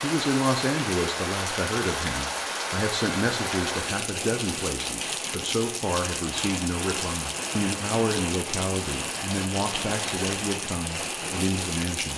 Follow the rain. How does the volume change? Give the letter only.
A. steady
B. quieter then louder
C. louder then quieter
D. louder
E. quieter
A.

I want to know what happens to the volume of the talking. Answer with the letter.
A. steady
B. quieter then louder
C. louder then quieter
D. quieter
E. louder
A.